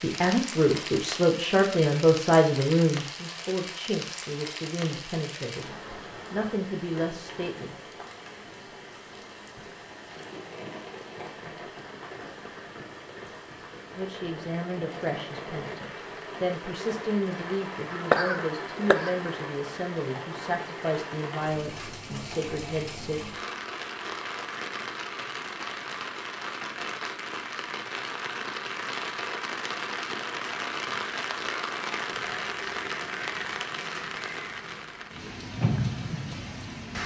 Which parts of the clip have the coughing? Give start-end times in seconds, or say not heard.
17.9-19.2.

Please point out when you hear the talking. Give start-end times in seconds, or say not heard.
0.0-5.7, 6.3-7.8, 13.9-23.2.